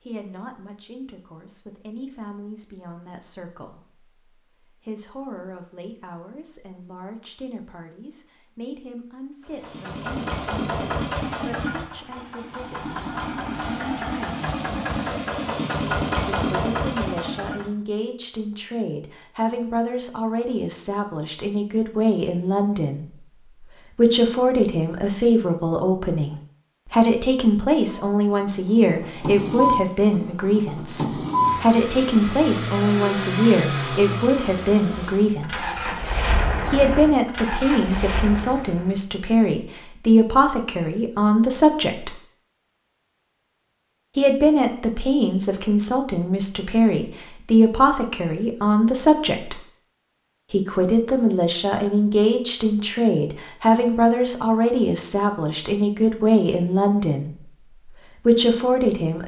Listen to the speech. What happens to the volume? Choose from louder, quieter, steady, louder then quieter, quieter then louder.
louder.